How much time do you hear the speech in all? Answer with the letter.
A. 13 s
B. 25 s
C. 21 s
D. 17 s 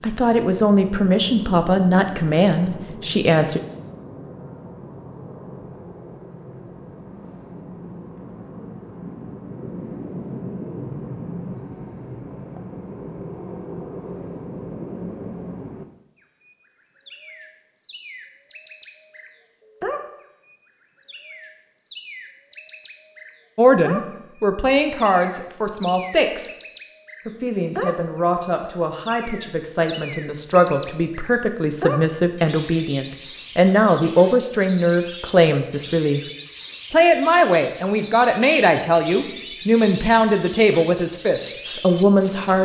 C.